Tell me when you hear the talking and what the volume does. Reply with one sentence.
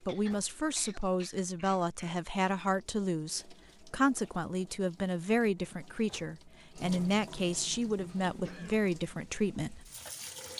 You can hear the talking from 0.1 to 9.8 s, at a steady volume.